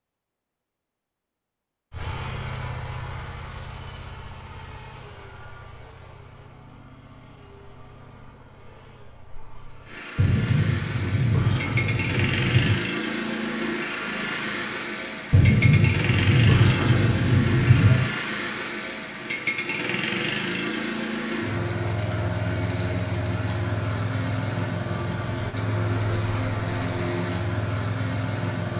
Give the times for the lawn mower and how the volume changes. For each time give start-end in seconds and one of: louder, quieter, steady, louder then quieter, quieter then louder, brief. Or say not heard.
1.9-28.7 louder.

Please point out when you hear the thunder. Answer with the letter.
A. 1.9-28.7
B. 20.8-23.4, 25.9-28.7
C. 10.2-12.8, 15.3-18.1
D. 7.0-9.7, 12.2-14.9
C.